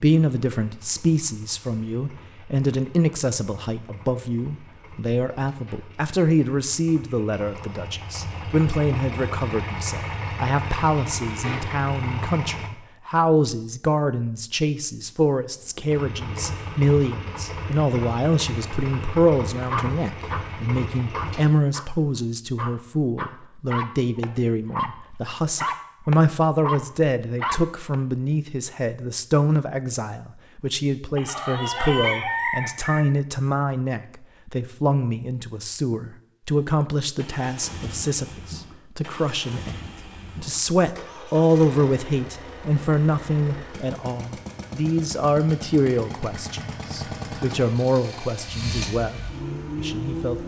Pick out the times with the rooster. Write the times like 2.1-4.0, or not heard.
31.1-33.0.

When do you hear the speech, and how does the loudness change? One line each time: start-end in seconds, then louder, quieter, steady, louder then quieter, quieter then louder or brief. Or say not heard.
0.0-39.8 steady
40.4-50.4 quieter.